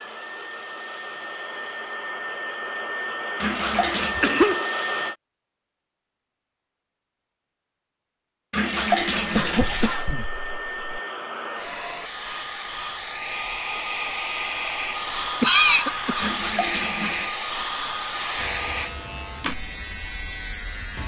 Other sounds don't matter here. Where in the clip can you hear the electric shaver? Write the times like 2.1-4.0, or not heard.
18.4-21.0.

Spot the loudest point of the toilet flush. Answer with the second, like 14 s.
9 s.